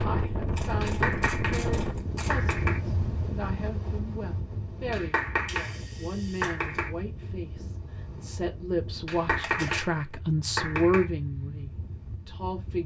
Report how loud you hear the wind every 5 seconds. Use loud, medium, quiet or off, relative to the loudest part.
loud, medium, medium.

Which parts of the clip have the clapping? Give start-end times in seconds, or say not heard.
0.8-1.6, 2.3-2.8, 4.9-5.8, 6.4-6.9, 9.1-9.9, 10.6-11.1.